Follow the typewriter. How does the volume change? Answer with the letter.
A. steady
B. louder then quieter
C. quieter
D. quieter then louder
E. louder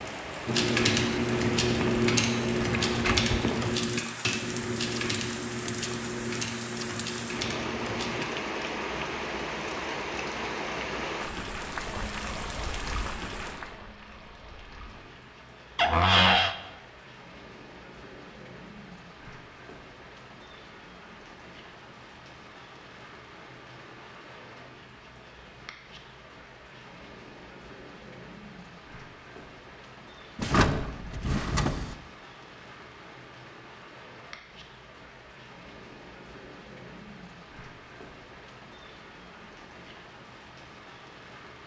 C.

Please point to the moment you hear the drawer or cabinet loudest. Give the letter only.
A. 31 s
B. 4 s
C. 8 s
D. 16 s
D.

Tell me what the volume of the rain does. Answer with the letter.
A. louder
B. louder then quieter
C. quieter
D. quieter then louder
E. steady
C.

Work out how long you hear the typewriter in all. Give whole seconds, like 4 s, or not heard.
8 s.